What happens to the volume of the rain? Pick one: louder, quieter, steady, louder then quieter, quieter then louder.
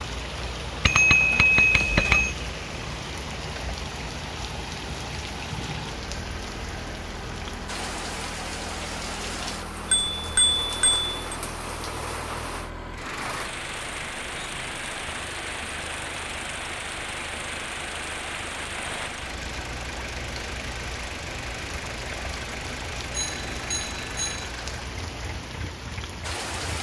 steady.